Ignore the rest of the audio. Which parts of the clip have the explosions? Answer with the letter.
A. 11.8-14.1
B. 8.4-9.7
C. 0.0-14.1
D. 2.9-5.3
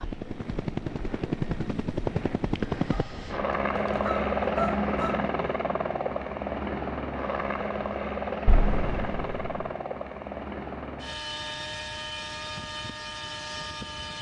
B.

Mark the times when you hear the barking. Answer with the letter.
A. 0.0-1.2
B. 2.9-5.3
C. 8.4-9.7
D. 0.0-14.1
B.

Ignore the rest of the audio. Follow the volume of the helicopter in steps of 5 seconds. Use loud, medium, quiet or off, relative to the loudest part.
loud, loud, medium.